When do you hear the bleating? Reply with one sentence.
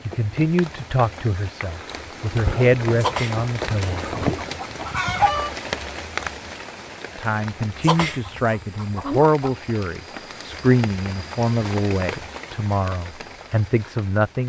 You can't hear the bleating here.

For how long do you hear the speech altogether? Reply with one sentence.
The speech can be heard for 11 seconds in total.